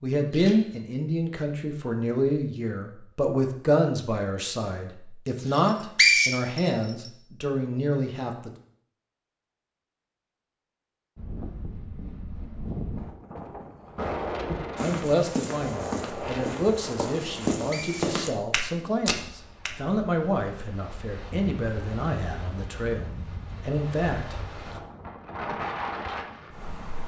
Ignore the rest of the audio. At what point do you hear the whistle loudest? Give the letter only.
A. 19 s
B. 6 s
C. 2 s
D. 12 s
B.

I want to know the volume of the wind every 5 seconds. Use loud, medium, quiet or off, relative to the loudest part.
off, off, loud, loud, medium, loud.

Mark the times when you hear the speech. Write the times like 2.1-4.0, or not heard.
0.0-8.5, 14.8-24.8.